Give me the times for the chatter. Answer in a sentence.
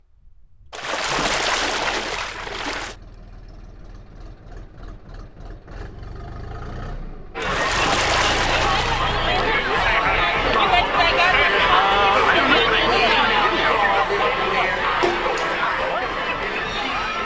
The chatter can be heard from 7.3 to 17.2 s.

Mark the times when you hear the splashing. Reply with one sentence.
The splashing can be heard from 0.7 to 3.0 s, from 7.4 to 9.2 s and from 15.0 to 15.7 s.